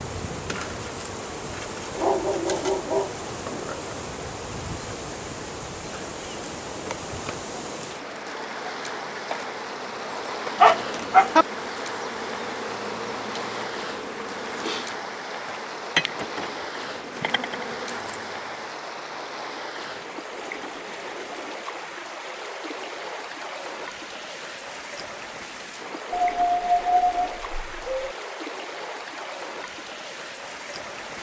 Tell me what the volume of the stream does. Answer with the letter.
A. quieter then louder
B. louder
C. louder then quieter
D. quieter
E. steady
E.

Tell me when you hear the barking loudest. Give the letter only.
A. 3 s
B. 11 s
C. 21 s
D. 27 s
B.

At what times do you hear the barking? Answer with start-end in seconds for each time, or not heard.
1.9-4.0, 10.6-11.4, 26.1-28.1.